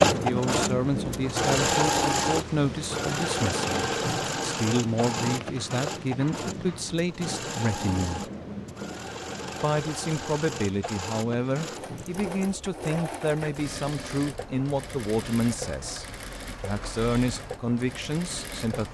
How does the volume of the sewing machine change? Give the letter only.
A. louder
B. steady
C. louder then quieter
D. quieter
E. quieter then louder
D.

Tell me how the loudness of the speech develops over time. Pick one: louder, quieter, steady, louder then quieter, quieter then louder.
steady.